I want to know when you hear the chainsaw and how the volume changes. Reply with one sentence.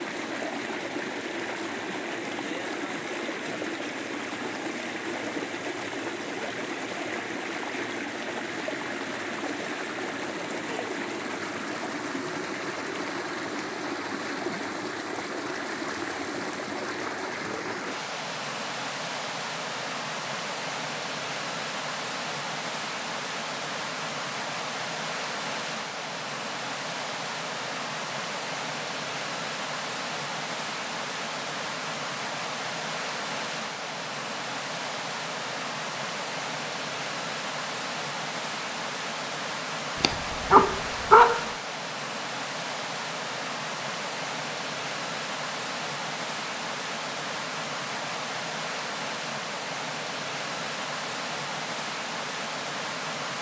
You can't hear the chainsaw here.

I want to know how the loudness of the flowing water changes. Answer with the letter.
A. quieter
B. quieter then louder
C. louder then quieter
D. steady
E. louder
D.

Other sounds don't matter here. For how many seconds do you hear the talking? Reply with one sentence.
You can't hear the talking here.